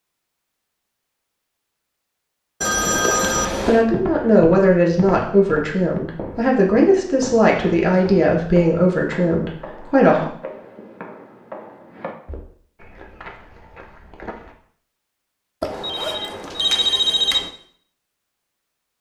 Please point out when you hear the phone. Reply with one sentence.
The phone can be heard from 2.6 to 3.9 s and from 15.6 to 17.5 s.